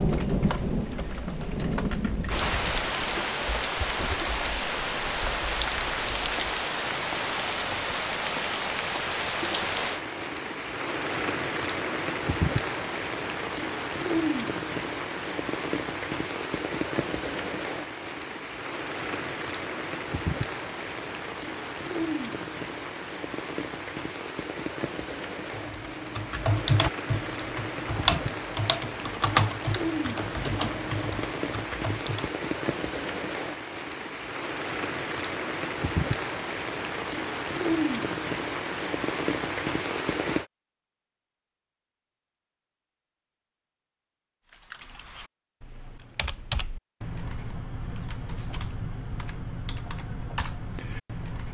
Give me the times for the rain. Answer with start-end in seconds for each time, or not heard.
0.0-40.5.